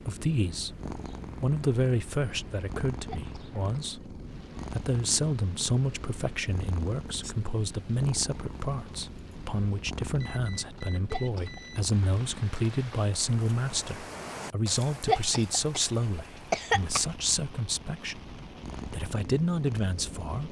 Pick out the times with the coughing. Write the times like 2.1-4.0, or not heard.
3.0-3.9, 11.1-11.8, 15.1-17.1.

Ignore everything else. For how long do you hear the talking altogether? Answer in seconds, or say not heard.
20 s.